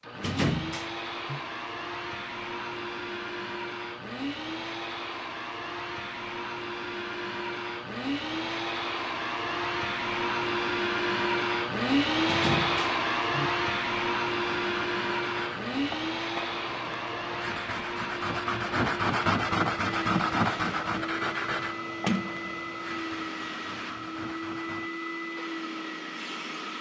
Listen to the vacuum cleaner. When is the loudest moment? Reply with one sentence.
The volume of the vacuum cleaner peaks at 12 seconds.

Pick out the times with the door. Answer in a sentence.
The door can be heard from 0.1 to 1.4 s, from 12.2 to 13.5 s and from 22.1 to 22.6 s.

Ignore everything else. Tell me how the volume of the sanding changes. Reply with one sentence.
The volume of the sanding goes up, then down.